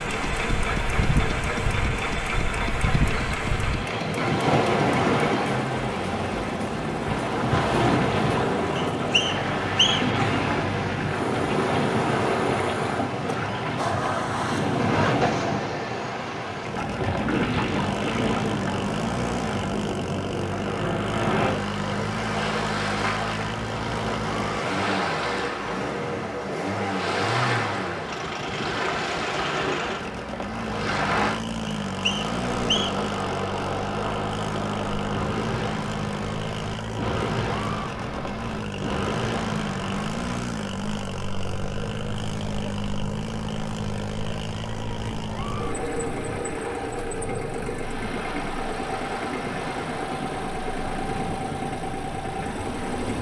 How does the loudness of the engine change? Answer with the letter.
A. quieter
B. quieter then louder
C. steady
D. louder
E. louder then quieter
C.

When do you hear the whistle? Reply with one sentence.
You can hear the whistle from 8.8 to 10.2 s and from 31.6 to 33.0 s.